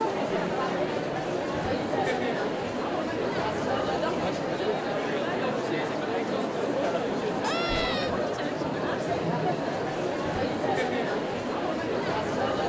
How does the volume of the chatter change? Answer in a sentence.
The volume of the chatter stays about the same.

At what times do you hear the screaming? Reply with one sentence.
You can hear the screaming from 7.4 to 8.2 s.